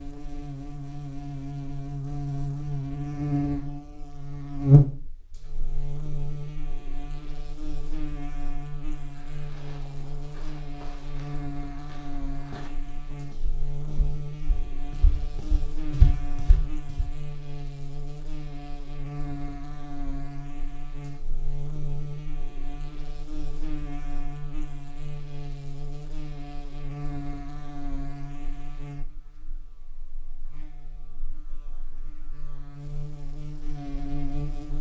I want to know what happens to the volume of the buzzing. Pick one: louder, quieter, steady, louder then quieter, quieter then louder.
quieter.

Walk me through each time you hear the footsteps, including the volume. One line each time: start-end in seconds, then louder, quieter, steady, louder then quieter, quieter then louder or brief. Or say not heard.
8.9-17.1 louder.